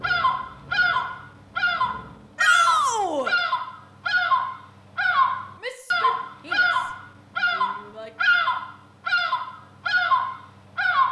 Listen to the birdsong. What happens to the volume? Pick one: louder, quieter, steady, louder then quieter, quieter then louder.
steady.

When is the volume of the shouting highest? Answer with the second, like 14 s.
3 s.